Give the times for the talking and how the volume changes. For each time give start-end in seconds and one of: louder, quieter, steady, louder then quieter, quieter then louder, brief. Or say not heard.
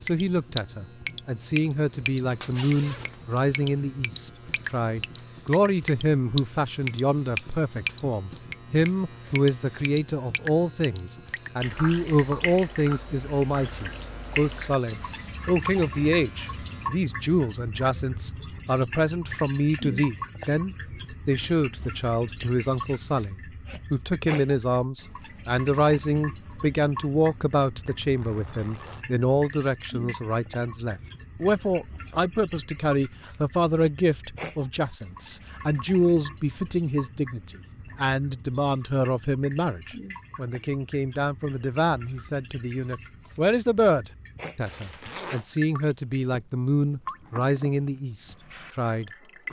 0.0-49.4 steady.